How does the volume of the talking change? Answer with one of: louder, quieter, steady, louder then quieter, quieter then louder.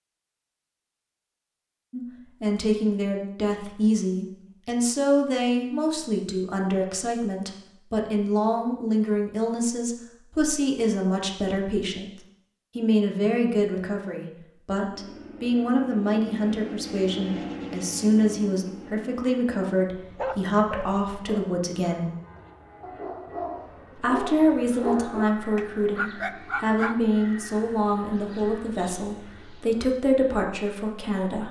steady.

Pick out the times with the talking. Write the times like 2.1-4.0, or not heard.
1.9-12.1, 12.8-22.1, 23.9-31.4.